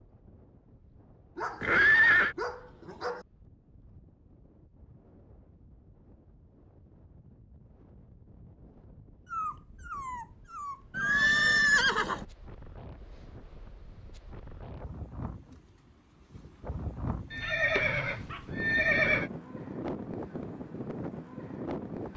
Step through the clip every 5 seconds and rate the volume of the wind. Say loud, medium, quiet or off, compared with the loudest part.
quiet, quiet, quiet, loud, loud.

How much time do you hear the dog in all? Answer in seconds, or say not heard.
5 s.